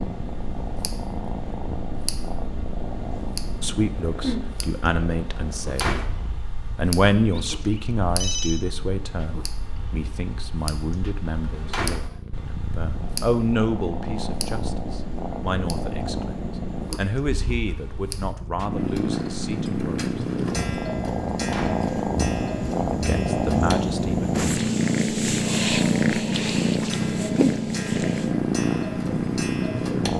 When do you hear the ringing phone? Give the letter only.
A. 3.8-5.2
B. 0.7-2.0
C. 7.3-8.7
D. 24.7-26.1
C.